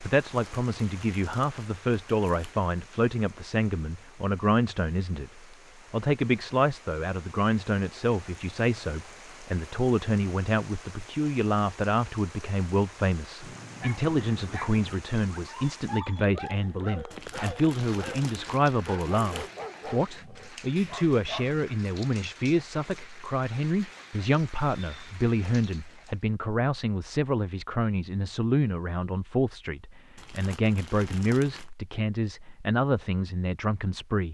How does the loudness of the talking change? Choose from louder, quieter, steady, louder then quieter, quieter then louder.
steady.